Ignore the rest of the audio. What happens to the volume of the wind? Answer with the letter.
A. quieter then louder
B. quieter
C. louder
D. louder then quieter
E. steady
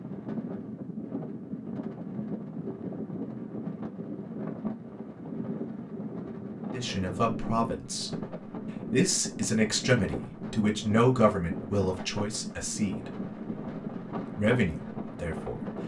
E.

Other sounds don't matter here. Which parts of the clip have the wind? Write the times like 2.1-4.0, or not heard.
0.0-15.8.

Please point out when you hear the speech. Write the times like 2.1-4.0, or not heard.
6.7-8.1, 8.9-13.1, 14.3-15.7.